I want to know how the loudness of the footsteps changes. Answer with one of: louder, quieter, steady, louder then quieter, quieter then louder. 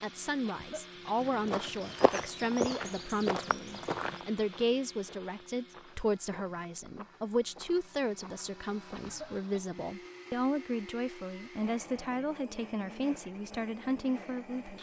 quieter.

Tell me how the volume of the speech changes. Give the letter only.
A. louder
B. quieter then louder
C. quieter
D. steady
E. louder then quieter
D.